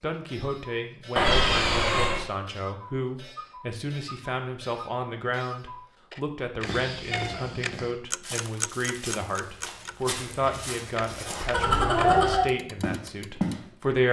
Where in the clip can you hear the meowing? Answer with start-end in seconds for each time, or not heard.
1.1-2.2, 7.1-7.5, 11.5-12.5.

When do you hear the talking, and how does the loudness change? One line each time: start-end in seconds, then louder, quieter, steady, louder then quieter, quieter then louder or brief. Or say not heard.
0.0-14.0 steady.